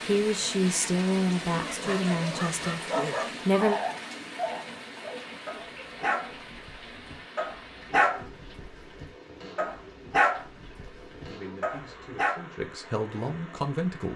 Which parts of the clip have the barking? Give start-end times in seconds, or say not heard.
1.6-12.4.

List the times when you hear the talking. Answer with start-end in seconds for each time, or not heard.
0.0-3.8, 11.2-14.1.